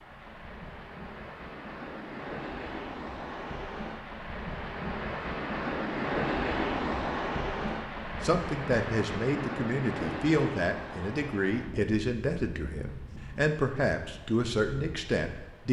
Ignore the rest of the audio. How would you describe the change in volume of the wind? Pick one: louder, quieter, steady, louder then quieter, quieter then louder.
louder then quieter.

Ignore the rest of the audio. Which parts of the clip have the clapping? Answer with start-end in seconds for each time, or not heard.
not heard.